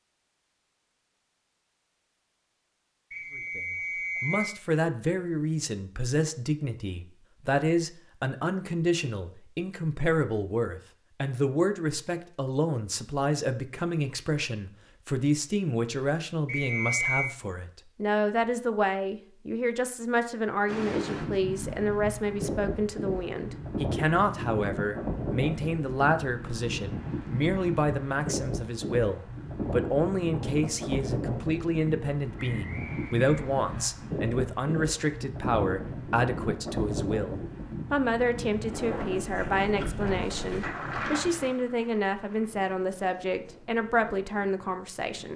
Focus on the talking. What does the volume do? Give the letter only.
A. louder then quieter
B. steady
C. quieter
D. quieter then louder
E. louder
B.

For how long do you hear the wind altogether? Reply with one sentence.
The wind can be heard for 25 seconds in total.